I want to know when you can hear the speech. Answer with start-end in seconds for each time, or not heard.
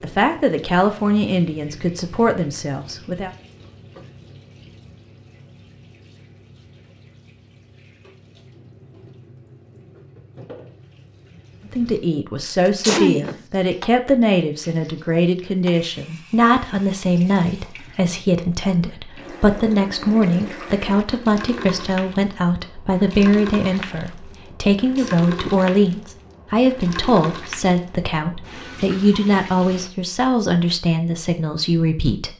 0.0-3.3, 11.7-32.3.